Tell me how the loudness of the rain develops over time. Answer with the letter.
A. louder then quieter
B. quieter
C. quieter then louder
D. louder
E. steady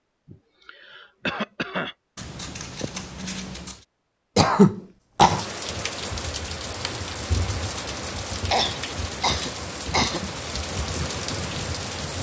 E.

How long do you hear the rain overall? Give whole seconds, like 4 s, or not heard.
7 s.